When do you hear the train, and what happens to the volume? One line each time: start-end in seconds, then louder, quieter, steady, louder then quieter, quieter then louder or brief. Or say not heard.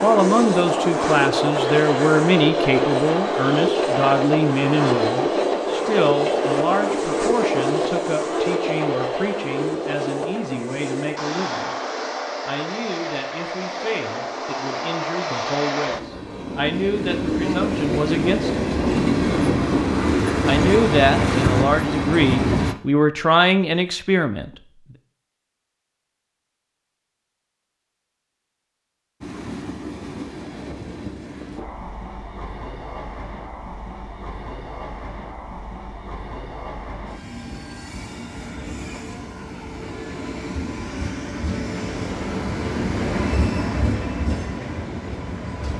0.0-22.8 quieter then louder
29.2-45.7 louder.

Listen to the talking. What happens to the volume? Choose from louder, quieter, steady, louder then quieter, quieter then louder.
quieter then louder.